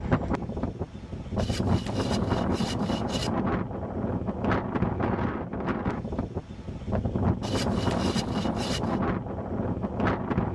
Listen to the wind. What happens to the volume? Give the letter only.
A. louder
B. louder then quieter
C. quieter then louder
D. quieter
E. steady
E.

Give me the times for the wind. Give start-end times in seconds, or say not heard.
0.0-10.5.